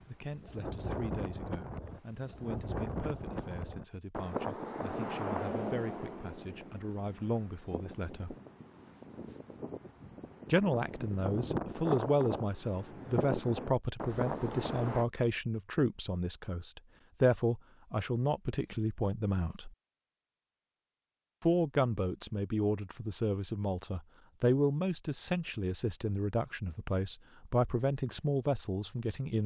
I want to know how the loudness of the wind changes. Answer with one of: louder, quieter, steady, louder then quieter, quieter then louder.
quieter then louder.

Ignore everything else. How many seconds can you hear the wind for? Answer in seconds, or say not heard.
15 s.